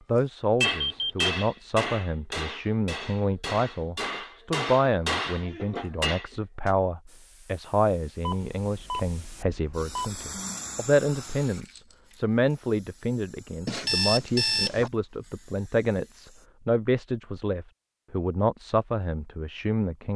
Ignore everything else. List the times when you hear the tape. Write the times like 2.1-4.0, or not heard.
not heard.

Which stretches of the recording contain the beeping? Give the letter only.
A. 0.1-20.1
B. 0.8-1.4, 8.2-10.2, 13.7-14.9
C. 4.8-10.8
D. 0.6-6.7
B.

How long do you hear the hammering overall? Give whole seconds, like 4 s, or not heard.
6 s.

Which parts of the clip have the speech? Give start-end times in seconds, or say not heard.
0.1-20.1.